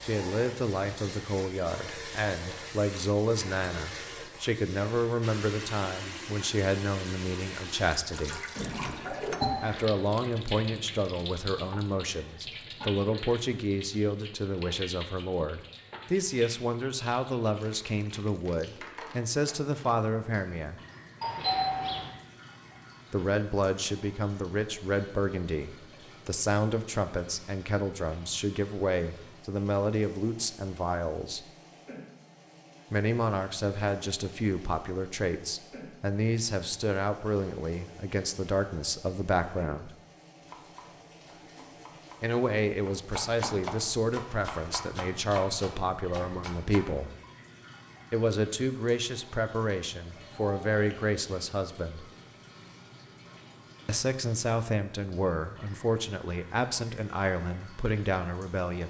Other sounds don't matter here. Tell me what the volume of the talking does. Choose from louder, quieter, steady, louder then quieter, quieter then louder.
steady.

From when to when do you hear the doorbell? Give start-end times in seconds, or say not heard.
8.6-9.5, 21.2-22.1, 50.3-51.0.